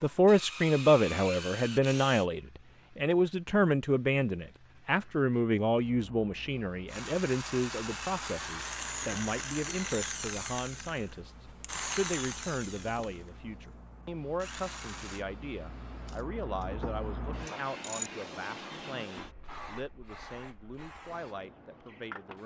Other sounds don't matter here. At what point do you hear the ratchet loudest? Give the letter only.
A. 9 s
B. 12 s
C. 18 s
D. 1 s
C.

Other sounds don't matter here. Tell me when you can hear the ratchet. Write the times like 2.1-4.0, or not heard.
16.1-18.1.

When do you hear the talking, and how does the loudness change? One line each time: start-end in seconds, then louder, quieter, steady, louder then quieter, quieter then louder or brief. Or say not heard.
0.0-22.4 quieter.